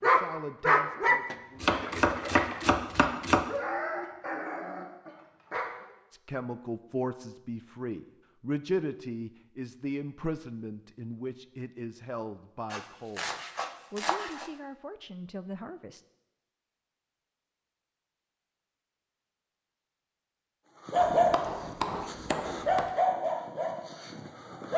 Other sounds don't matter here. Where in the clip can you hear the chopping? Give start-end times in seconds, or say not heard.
1.6-3.5, 12.7-14.5, 20.9-22.9.